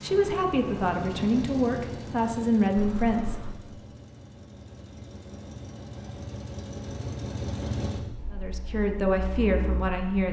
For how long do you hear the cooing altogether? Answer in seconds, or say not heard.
not heard.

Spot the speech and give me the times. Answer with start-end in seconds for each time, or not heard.
0.0-3.5, 8.3-10.2.